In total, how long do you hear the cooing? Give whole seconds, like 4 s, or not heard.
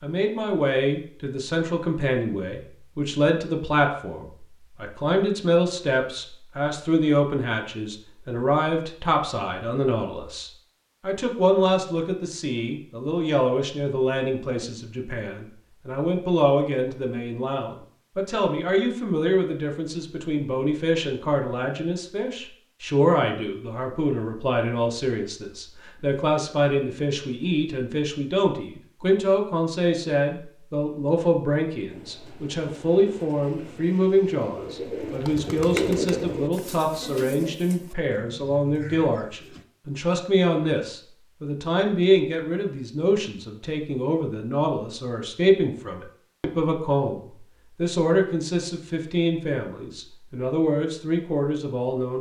8 s.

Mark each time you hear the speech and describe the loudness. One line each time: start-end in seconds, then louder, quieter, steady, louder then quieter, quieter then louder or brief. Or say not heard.
0.0-52.1 steady.